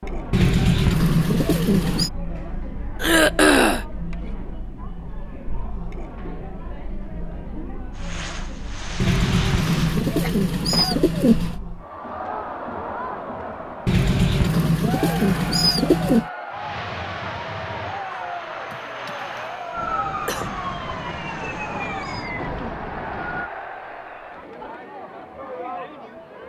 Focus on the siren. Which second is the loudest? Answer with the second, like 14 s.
20 s.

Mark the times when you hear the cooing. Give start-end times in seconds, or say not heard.
0.3-2.1, 9.0-11.6, 13.8-16.2, 20.4-22.8.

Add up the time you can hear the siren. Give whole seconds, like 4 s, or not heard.
4 s.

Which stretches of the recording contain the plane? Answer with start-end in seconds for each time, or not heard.
8.0-10.1, 16.5-22.2.